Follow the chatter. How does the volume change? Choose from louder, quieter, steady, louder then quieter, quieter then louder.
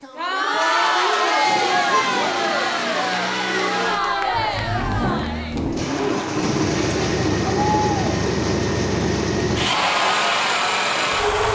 quieter.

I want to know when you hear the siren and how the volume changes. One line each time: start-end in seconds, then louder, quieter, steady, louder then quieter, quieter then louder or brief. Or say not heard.
not heard.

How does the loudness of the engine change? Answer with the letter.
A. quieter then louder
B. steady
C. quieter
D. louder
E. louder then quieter
D.